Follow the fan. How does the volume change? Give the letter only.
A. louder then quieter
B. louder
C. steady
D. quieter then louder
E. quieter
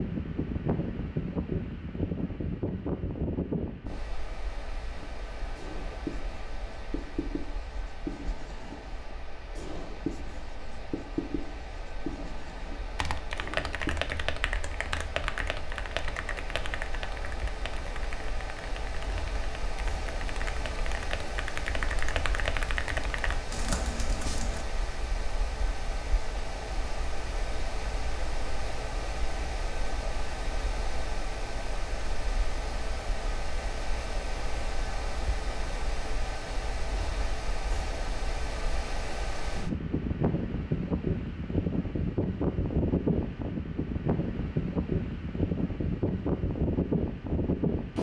D.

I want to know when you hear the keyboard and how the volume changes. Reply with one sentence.
You can hear the keyboard from 12.9 to 24.6 s, getting quieter then louder.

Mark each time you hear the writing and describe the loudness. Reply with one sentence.
The writing can be heard from 5.0 to 13.9 s, at a steady volume.